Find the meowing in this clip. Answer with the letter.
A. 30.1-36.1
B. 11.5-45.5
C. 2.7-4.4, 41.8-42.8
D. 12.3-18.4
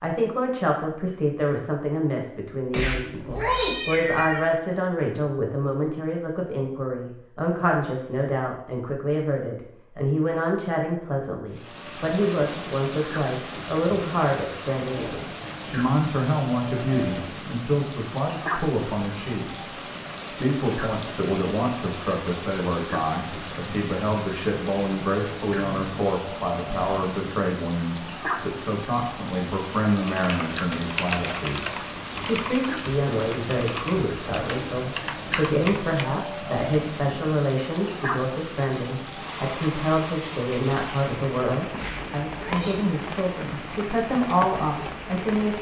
C.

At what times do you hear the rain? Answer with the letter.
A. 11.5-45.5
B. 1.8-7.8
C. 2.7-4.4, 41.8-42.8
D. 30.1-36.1
A.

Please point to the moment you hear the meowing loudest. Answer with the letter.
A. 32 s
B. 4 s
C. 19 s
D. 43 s
B.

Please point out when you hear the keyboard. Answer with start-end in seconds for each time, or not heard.
30.1-36.1.